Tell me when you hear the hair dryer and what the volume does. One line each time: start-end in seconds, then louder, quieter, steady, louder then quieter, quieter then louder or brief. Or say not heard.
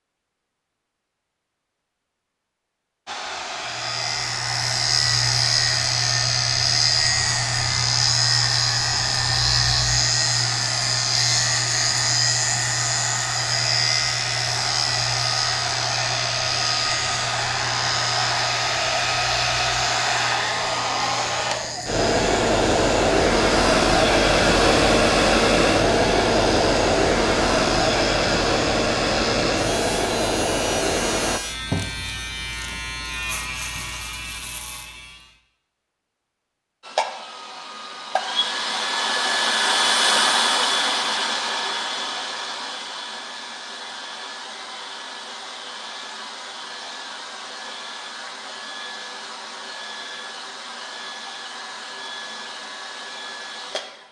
3.0-31.4 louder
36.8-54.0 quieter.